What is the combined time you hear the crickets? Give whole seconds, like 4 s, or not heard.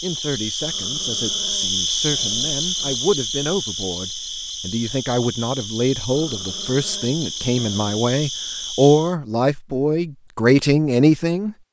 9 s.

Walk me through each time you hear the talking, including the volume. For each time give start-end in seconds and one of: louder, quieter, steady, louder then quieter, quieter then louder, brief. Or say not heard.
0.0-11.6 louder.